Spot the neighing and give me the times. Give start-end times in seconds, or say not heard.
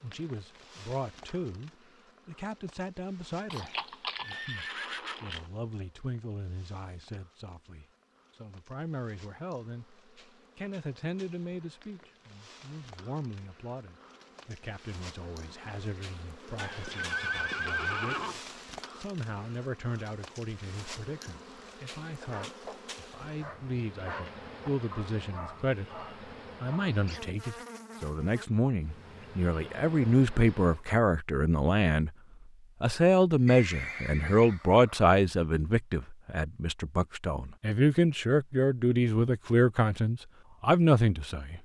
3.5-5.4, 16.6-18.4, 33.5-35.1.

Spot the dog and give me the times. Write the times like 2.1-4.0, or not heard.
22.1-27.2.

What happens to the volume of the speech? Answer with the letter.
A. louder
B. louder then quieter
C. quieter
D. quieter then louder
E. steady
A.